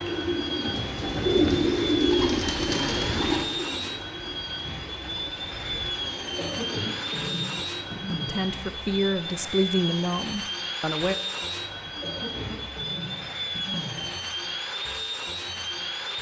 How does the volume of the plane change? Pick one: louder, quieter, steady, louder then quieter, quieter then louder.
steady.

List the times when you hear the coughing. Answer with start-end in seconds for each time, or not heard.
2.7-3.5, 6.3-8.3, 12.0-14.0.